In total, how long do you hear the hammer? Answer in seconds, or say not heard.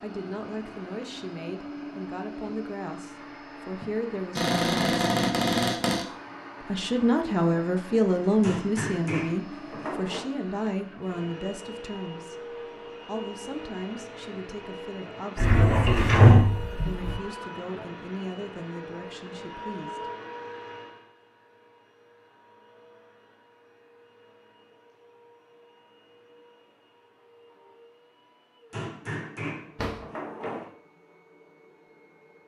4 s.